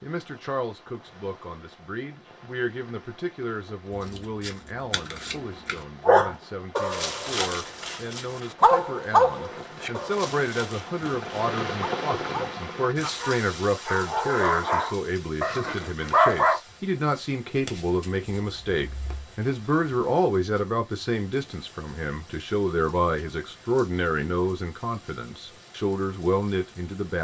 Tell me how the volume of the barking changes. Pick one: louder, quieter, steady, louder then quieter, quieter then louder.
quieter then louder.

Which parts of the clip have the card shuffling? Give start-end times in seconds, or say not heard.
4.1-5.8, 17.6-19.2.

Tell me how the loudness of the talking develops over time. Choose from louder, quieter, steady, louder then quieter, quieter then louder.
louder.